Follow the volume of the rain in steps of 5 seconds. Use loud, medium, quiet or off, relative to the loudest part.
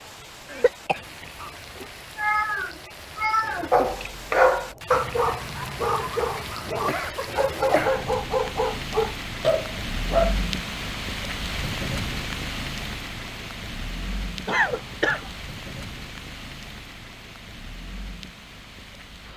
medium, loud, loud, medium.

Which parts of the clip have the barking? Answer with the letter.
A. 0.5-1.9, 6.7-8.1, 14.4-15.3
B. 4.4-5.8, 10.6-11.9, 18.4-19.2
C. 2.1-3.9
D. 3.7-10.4
D.